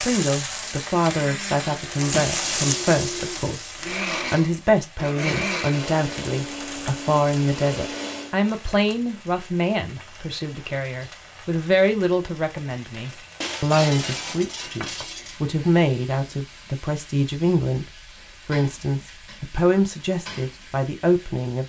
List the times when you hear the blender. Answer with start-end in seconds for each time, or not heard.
0.2-8.3.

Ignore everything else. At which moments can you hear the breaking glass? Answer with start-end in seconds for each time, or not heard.
2.1-3.9, 13.4-15.4.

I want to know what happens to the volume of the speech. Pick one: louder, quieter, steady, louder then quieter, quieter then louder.
steady.